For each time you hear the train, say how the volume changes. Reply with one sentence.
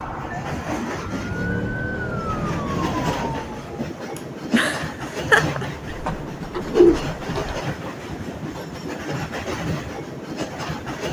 You can hear the train from 0.0 to 11.0 s, at a steady volume.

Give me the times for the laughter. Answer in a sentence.
You can hear the laughter from 4.2 to 6.0 s.